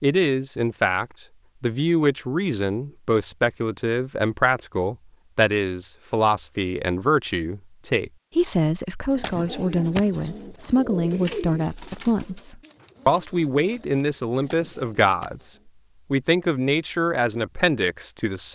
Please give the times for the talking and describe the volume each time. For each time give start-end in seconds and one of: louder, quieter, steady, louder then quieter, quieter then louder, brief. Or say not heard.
0.0-18.5 steady.